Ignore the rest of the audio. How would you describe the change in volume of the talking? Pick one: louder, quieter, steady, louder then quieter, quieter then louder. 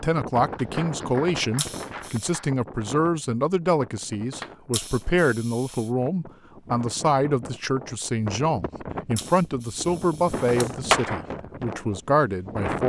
steady.